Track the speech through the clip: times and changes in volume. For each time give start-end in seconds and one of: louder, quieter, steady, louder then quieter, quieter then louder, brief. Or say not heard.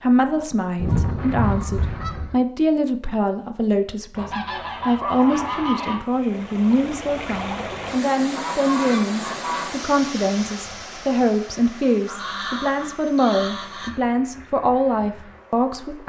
0.0-16.0 steady.